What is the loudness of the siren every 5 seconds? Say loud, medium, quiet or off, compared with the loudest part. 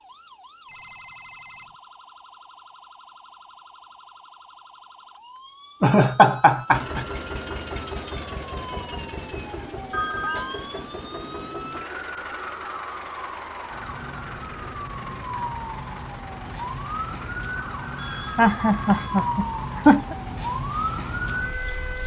quiet, quiet, medium, loud, loud.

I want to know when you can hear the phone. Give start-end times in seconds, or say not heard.
0.7-1.8, 9.9-10.8, 17.9-19.2.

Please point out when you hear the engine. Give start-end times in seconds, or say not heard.
6.7-22.0.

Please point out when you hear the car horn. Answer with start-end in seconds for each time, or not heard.
not heard.